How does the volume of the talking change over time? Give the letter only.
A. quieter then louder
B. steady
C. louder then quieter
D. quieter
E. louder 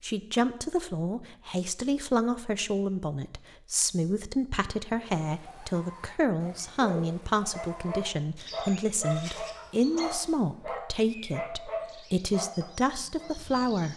B.